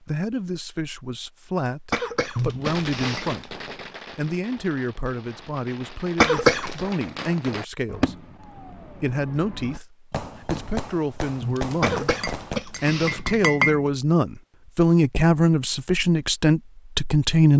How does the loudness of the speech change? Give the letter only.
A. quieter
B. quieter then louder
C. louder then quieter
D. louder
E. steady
D.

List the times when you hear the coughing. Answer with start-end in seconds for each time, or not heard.
1.9-3.5, 6.2-6.8, 11.8-13.4.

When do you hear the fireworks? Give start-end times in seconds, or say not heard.
2.6-12.6.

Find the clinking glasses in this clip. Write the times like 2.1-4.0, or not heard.
2.4-3.2, 11.4-13.8.